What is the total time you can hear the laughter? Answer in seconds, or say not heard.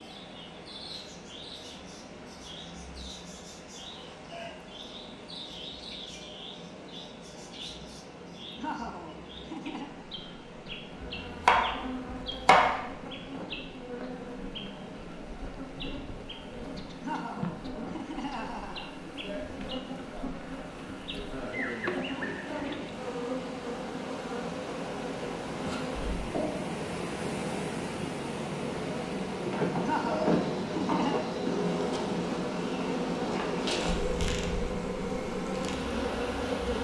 5 s.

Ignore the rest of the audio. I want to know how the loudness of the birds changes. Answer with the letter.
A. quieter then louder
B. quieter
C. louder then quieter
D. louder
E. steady
D.